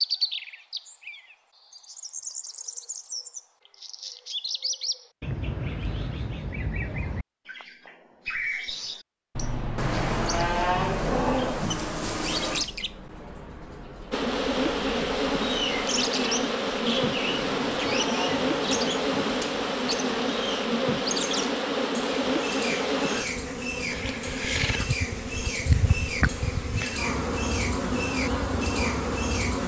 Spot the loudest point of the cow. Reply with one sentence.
The loudest moment of the cow is at 11 seconds.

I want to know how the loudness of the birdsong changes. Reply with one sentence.
The loudness of the birdsong stays about the same.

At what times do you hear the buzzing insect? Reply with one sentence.
The buzzing insect can be heard from 14.1 to 29.6 s.